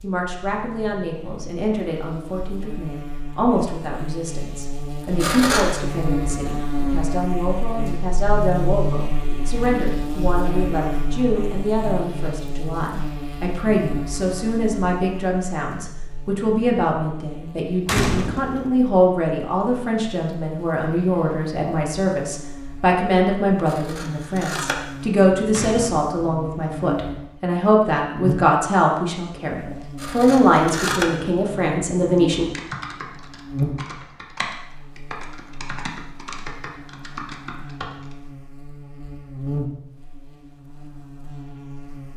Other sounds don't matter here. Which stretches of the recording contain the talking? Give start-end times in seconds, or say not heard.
0.0-32.5.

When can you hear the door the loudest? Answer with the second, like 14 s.
18 s.